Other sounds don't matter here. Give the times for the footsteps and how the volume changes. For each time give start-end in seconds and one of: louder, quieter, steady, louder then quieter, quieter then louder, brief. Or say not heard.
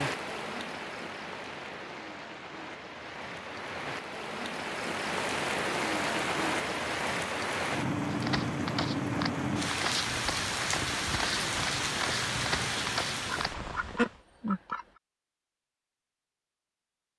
8.1-13.5 steady.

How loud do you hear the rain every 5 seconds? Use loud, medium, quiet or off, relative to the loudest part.
medium, loud, loud, off.